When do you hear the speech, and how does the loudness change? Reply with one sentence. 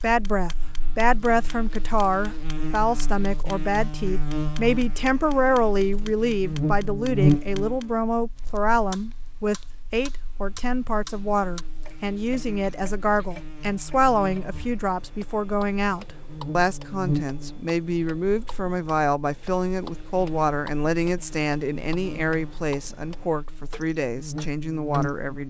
The speech can be heard from 0.0 to 25.4 s, at a steady volume.